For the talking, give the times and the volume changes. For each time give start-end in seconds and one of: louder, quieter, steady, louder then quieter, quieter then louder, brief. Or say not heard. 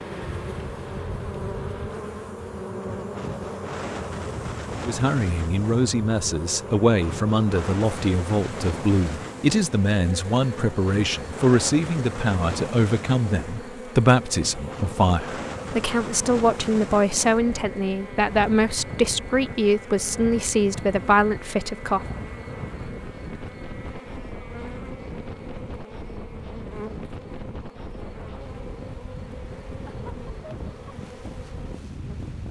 4.8-22.0 steady.